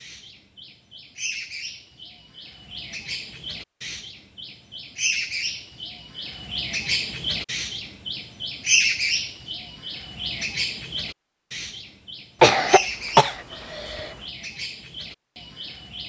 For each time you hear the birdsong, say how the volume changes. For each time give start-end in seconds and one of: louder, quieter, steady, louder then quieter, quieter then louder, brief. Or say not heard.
0.0-16.0 louder then quieter.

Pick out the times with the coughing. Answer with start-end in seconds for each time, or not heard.
12.4-14.1.